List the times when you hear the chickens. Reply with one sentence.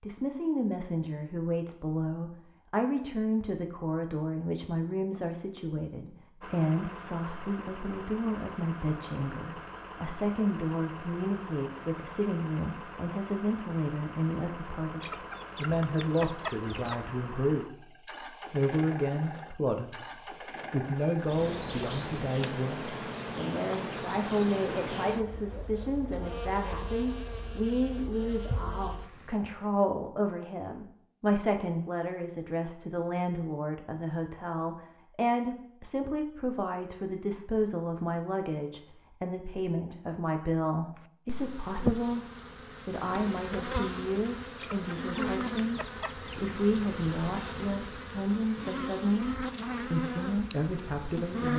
You can hear the chickens from 15.0 to 17.0 s and from 44.5 to 46.4 s.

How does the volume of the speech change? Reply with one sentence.
The volume of the speech stays about the same.